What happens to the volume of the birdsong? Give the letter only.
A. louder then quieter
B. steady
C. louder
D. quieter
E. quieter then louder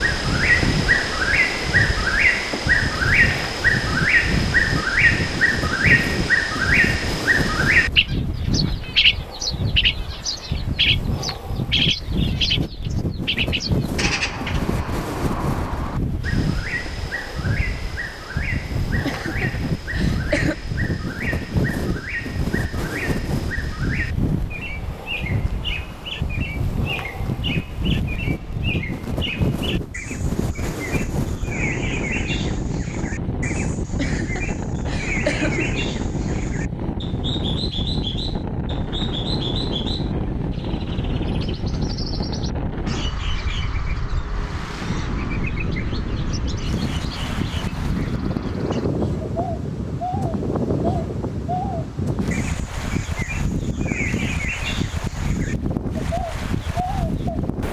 D.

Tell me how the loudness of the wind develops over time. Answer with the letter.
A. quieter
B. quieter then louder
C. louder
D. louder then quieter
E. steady
E.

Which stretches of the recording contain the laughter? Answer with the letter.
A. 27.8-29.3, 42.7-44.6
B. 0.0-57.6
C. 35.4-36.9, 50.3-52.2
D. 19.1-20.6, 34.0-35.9
D.